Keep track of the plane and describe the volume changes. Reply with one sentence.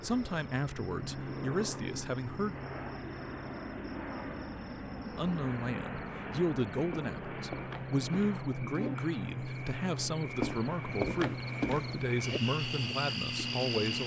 The volume of the plane stays about the same.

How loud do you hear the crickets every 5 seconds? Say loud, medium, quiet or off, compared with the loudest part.
quiet, medium, loud.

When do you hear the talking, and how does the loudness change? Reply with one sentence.
You can hear the talking briefly from 0.0 to 2.5 s; and from 5.0 to 14.0 s, at a steady volume.